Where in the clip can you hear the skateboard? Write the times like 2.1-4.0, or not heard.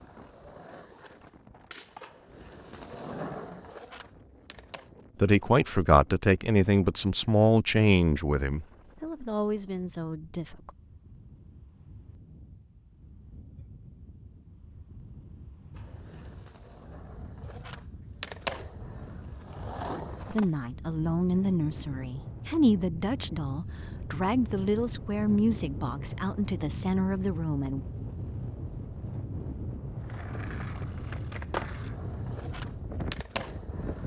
0.0-5.0, 15.8-20.4, 30.0-34.0.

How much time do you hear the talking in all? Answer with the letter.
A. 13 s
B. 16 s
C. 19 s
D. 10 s
A.